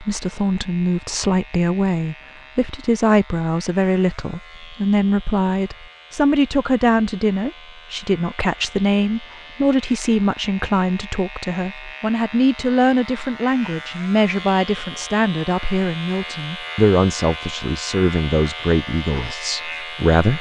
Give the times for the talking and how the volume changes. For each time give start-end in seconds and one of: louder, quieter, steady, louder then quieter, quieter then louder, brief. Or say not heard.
0.0-20.3 steady.